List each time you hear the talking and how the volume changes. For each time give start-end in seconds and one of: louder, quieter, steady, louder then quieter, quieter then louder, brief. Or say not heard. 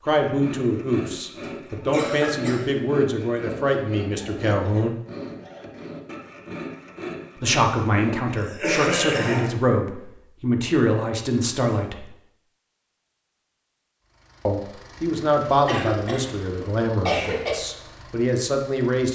0.0-5.0 steady
7.4-12.1 steady
14.4-19.1 quieter then louder.